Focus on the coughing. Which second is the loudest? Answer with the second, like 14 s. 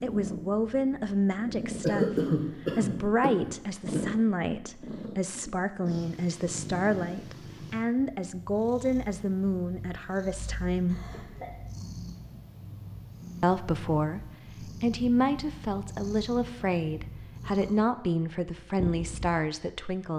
2 s.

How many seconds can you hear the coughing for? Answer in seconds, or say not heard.
3 s.